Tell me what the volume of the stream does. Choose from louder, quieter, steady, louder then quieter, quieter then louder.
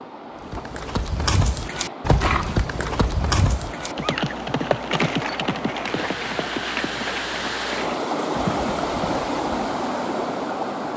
louder.